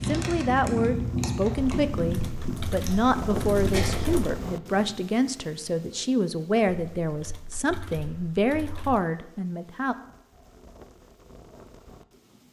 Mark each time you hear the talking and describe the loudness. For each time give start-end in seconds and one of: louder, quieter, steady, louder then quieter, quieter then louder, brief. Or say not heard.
0.1-9.9 steady.